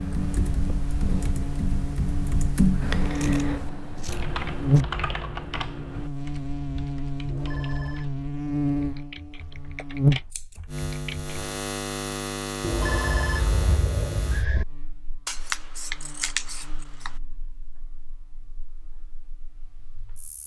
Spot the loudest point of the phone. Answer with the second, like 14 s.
13 s.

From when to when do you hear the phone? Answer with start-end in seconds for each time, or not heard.
7.2-8.2, 12.6-14.7.